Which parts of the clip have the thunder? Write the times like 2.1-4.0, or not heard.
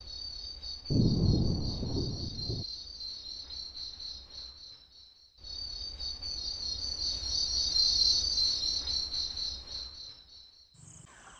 0.9-2.6.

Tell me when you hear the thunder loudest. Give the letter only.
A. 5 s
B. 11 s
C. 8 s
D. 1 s
D.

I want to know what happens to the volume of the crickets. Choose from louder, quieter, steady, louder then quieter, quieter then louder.
louder then quieter.